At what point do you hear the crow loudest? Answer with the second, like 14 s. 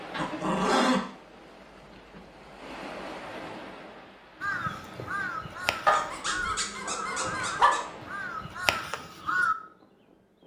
9 s.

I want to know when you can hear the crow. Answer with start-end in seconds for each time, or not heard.
4.4-9.6.